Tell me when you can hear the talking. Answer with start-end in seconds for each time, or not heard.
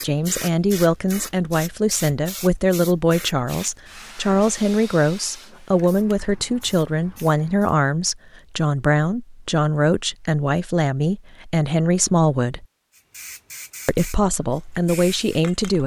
0.0-12.7, 13.8-15.8.